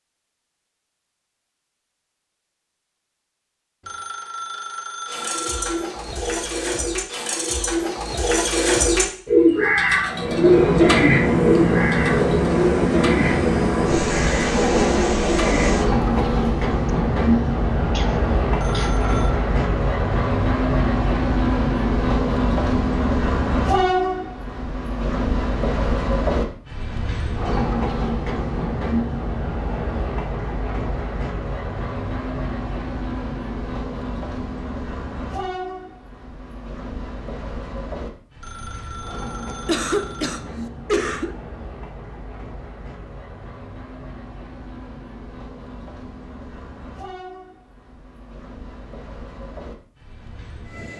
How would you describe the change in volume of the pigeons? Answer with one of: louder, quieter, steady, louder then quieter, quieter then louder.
louder then quieter.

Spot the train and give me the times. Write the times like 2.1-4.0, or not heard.
10.1-50.9.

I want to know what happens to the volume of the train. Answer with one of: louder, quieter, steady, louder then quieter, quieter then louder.
quieter.